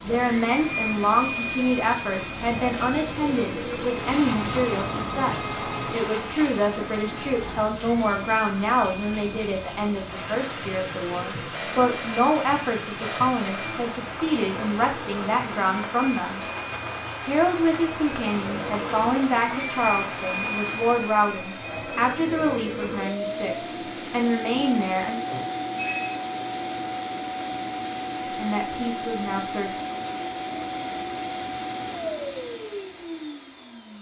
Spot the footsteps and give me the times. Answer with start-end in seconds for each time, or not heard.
not heard.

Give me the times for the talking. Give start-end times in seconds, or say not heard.
0.0-16.4, 17.2-25.2, 28.4-29.8.